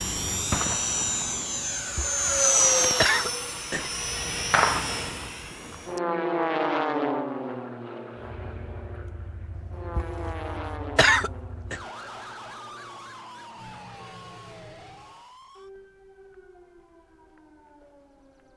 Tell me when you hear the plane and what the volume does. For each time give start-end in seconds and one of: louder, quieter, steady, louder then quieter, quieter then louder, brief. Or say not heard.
0.0-15.2 quieter.